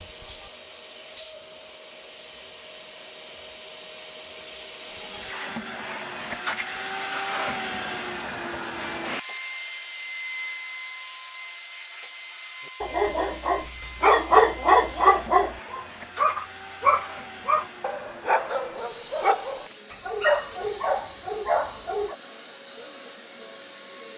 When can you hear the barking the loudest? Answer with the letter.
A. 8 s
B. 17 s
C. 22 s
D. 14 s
D.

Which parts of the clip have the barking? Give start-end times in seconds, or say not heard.
12.8-22.1.